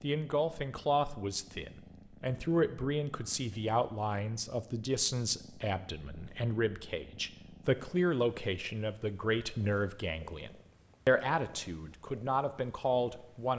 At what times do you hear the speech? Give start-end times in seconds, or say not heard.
0.0-13.5.